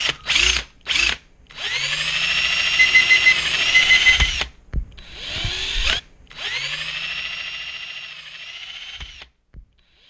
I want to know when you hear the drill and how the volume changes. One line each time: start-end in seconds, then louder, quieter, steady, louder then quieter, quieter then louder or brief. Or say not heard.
0.0-10.0 quieter.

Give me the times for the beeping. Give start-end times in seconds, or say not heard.
2.8-4.3.